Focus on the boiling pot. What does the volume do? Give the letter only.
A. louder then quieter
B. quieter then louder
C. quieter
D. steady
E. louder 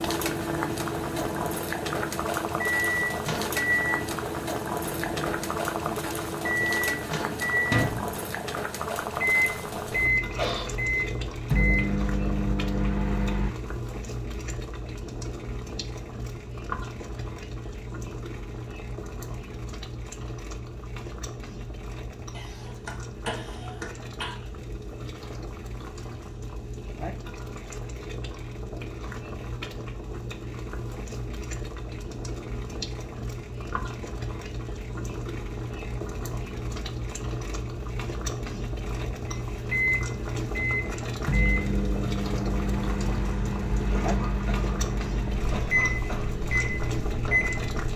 B.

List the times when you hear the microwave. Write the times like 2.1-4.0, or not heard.
0.0-13.5, 39.5-47.9.